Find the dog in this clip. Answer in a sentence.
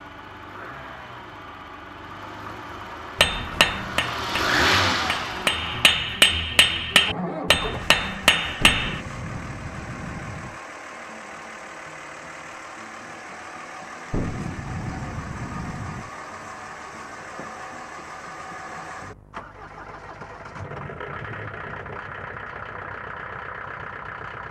You can't hear the dog here.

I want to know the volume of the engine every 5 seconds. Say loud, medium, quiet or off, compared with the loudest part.
loud, medium, medium, medium, medium.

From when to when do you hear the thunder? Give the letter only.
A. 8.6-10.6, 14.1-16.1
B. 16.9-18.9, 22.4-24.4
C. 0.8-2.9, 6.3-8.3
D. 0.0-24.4
A.